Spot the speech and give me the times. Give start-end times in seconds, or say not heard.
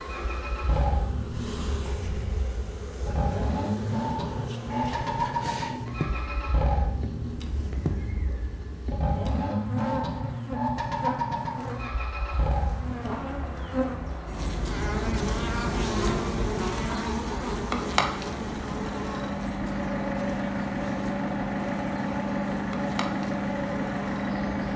not heard.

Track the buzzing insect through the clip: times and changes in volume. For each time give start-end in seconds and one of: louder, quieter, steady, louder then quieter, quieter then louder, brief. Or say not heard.
0.0-24.7 louder then quieter.